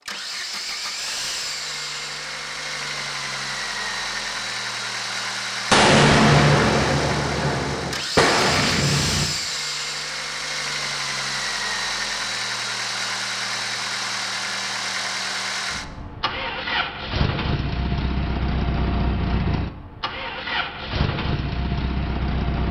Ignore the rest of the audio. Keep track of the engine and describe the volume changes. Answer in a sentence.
The loudness of the engine stays about the same.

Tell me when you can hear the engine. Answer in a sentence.
You can hear the engine from 0.1 to 22.6 s.